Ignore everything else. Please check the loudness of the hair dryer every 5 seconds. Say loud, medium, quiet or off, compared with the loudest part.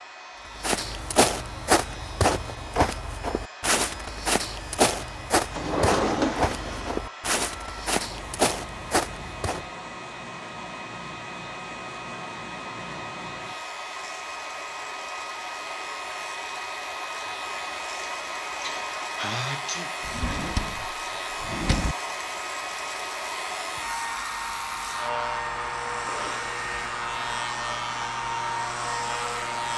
quiet, medium, medium, loud, loud, loud.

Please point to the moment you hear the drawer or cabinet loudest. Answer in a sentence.
The volume of the drawer or cabinet peaks at 6 seconds.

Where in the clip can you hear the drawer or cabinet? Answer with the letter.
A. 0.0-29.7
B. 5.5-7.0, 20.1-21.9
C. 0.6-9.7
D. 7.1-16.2
B.